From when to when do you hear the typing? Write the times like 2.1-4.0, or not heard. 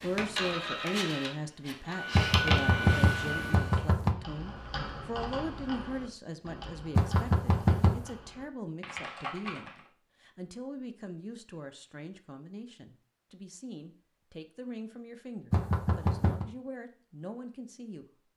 4.0-9.8.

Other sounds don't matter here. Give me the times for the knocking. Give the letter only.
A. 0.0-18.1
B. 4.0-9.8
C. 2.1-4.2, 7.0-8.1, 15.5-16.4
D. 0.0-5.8
C.